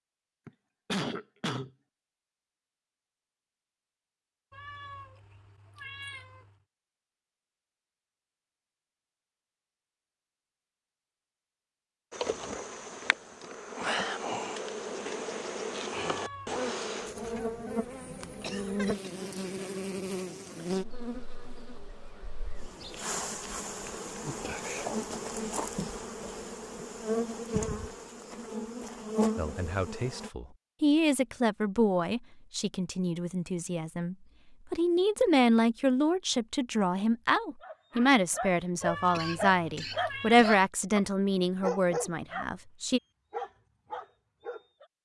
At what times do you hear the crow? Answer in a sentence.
You can't hear the crow here.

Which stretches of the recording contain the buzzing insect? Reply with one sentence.
The buzzing insect can be heard from 12.1 to 30.3 s.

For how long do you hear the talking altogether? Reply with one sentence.
You can hear the talking for 14 seconds altogether.